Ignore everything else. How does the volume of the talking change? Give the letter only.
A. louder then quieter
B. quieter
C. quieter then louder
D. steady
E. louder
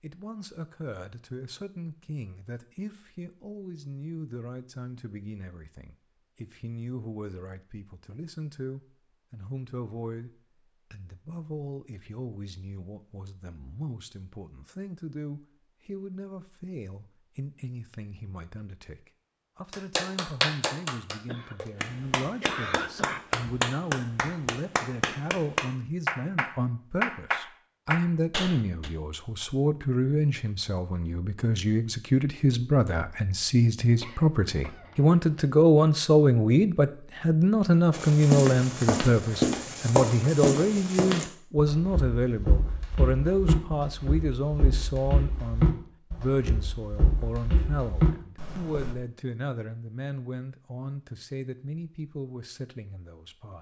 A.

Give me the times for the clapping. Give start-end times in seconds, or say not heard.
19.7-28.9.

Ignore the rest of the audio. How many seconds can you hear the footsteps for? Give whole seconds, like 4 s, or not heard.
11 s.